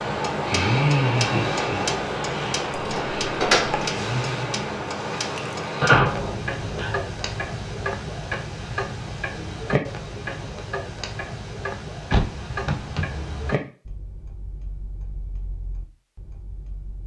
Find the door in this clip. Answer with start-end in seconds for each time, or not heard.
2.9-3.9, 5.8-7.0, 12.1-13.6.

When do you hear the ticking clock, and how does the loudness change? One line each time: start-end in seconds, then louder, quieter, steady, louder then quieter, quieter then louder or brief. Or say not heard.
0.0-17.0 quieter.